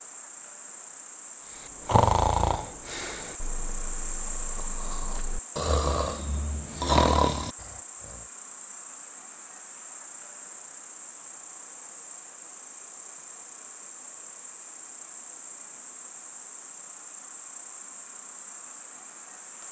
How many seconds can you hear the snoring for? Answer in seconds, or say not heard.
7 s.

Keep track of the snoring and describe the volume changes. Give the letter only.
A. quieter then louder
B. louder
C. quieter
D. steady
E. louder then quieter
A.